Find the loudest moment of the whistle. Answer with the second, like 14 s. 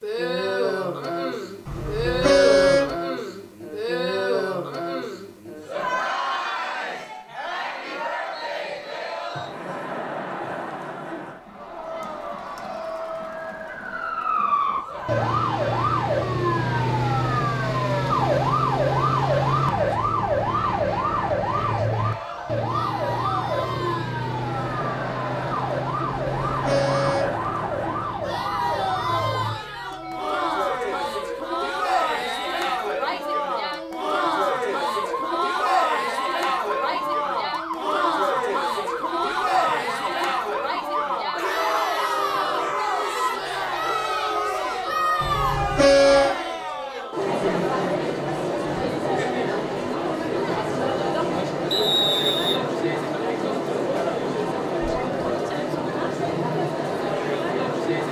52 s.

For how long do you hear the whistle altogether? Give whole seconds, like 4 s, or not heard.
3 s.